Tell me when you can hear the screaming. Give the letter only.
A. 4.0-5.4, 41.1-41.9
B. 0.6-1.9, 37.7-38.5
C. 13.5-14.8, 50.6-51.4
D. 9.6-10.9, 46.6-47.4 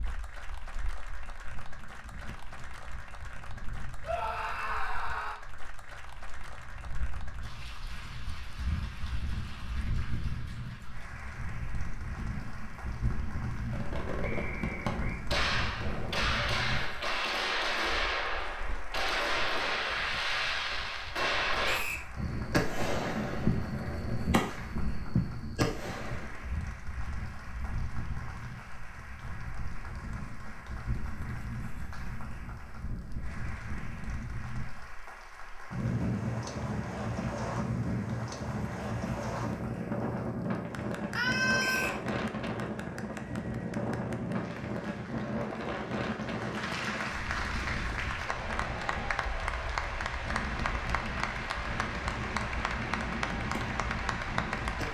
A.